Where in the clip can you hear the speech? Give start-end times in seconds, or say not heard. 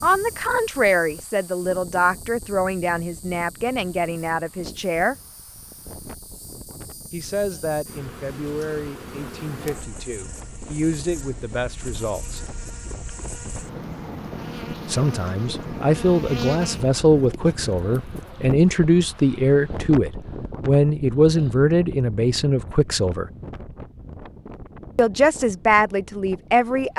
0.0-5.2, 7.1-12.5, 14.8-23.2, 24.9-26.9.